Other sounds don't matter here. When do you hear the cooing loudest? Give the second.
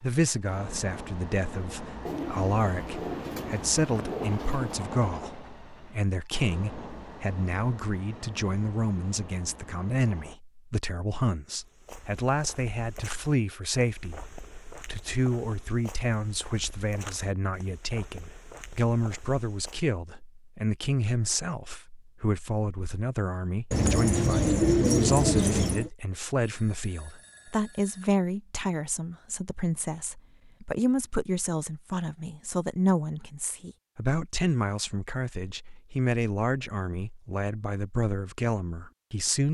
25 s.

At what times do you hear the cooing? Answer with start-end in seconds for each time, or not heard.
2.0-4.8, 23.7-25.9.